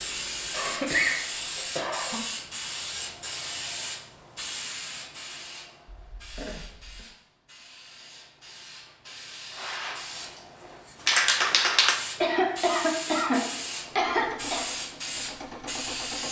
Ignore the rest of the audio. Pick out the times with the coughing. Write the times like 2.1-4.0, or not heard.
0.5-2.2, 6.0-7.0, 12.2-14.7.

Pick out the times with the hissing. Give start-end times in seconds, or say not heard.
0.0-16.2.